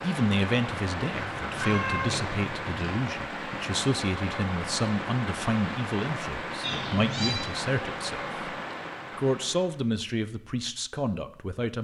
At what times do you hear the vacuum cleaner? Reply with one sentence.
You can't hear the vacuum cleaner here.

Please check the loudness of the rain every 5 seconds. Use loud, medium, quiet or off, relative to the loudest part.
loud, loud, off.